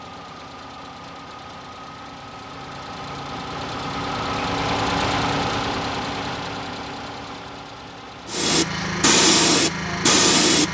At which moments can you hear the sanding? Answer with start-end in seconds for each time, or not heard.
not heard.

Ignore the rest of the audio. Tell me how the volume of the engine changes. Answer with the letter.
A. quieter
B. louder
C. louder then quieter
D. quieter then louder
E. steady
C.